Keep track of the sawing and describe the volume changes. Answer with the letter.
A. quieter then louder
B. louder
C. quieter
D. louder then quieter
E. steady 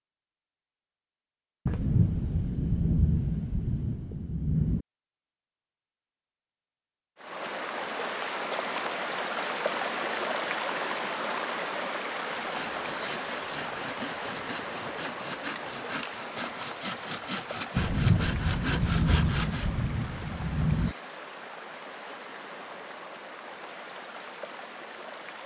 B.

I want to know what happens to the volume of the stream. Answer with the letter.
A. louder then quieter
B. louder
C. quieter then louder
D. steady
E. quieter
E.